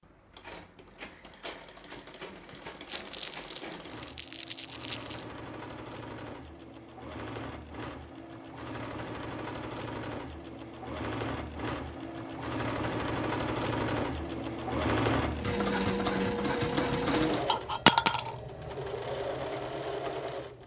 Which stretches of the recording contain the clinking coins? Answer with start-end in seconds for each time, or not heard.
17.4-18.4.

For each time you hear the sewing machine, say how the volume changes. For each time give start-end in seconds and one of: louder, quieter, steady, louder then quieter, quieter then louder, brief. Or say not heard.
0.0-20.6 louder.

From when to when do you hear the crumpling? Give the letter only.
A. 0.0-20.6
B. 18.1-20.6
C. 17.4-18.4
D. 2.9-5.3
D.